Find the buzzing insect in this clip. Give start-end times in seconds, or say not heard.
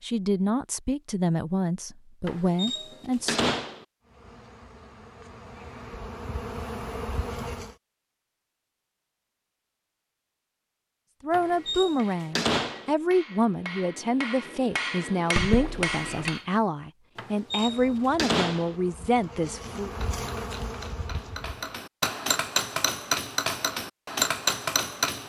4.0-7.8, 17.5-21.8.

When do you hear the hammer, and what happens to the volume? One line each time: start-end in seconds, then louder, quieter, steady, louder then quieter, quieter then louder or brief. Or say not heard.
11.4-16.4 louder
20.0-25.2 louder.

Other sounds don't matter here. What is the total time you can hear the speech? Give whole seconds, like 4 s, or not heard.
12 s.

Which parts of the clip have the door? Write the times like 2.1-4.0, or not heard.
2.2-3.9, 11.3-12.9, 17.1-18.8.